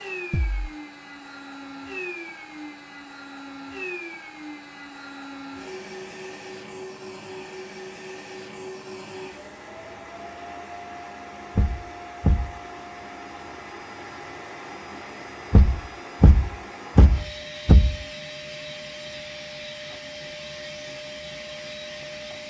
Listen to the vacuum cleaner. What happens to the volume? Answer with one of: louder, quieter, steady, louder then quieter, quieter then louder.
steady.